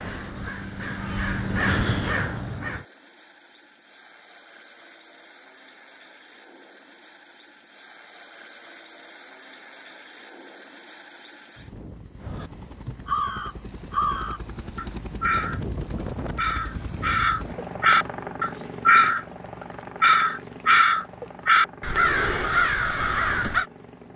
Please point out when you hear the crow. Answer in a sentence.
The crow can be heard from 0.0 to 2.9 s, from 12.2 to 15.6 s, from 16.4 to 19.2 s and from 20.0 to 23.6 s.